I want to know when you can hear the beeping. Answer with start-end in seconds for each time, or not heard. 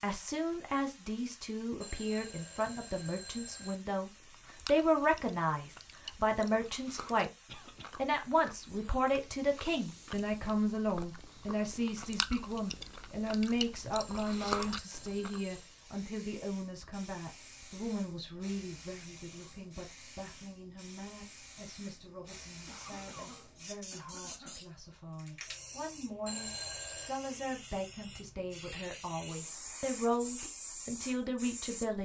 1.8-3.8, 13.9-15.7, 26.2-27.1.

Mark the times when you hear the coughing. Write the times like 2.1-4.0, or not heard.
7.5-7.9, 22.6-24.6.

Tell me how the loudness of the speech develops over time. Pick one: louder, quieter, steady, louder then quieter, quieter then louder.
quieter then louder.